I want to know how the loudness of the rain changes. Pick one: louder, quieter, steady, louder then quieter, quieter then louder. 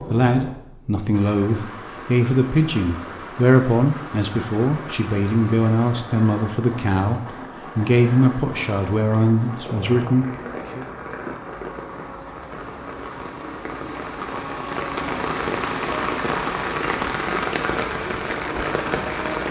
louder.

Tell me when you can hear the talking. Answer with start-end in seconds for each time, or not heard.
0.0-10.8.